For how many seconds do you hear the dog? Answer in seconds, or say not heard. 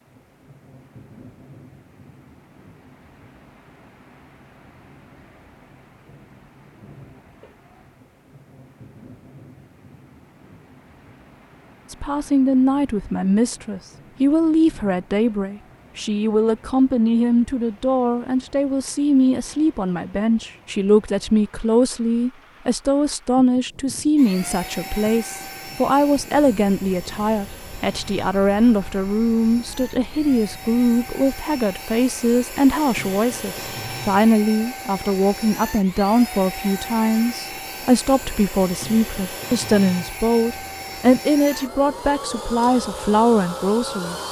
not heard.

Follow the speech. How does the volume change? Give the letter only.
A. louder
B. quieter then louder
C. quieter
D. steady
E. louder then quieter
D.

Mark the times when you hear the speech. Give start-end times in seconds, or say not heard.
11.9-44.2.